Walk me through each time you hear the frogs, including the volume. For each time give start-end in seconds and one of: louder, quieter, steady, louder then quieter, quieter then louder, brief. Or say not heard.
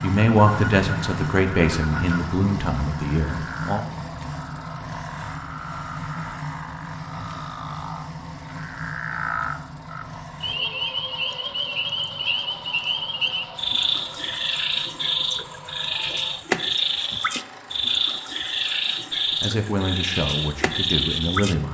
0.0-21.6 louder.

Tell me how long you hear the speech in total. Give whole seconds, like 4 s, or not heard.
6 s.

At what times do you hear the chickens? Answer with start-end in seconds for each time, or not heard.
not heard.